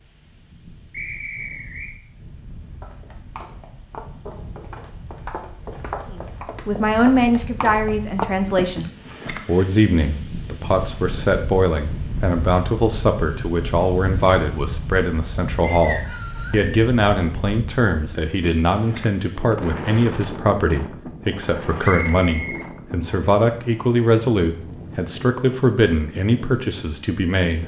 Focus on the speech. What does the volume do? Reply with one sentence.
The volume of the speech stays about the same.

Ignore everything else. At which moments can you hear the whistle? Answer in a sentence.
You can hear the whistle from 0.9 to 1.9 s, from 15.6 to 16.8 s and from 21.8 to 23.1 s.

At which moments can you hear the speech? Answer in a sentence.
The speech can be heard from 6.1 to 27.6 s.